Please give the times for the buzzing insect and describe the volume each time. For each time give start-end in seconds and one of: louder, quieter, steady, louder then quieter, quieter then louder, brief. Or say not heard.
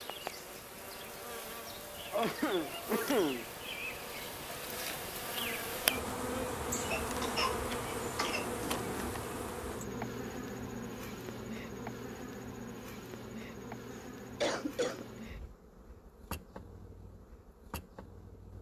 0.0-18.5 louder then quieter.